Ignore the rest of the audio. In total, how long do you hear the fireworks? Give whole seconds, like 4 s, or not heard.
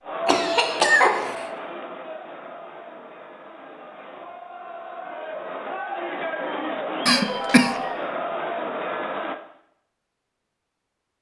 not heard.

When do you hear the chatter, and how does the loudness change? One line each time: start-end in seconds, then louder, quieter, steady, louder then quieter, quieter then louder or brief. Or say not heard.
0.0-9.3 quieter then louder.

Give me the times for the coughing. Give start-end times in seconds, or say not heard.
0.2-1.4, 7.0-7.8.